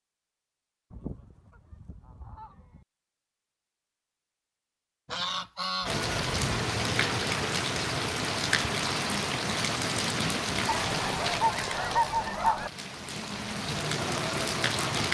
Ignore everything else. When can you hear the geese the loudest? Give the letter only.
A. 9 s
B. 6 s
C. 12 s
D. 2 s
C.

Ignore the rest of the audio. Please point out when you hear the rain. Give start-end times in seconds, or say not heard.
5.8-15.0.